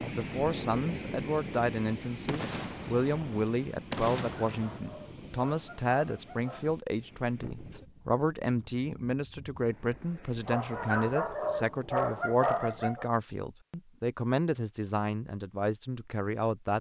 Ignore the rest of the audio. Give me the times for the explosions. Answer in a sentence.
You can hear the explosions from 2.2 to 4.8 s.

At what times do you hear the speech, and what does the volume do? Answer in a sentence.
The speech can be heard from 0.0 to 16.7 s, at a steady volume.